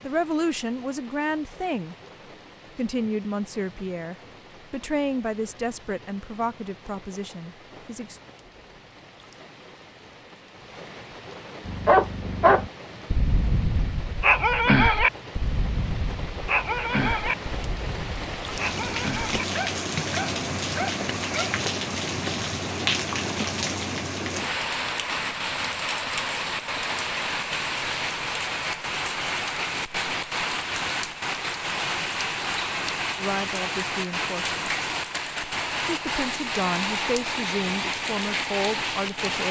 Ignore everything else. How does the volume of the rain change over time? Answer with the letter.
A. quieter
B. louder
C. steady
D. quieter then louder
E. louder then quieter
B.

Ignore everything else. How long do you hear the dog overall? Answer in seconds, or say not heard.
10 s.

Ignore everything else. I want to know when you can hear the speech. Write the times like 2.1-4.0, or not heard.
0.0-1.9, 2.8-8.2, 33.1-34.6, 35.9-39.4.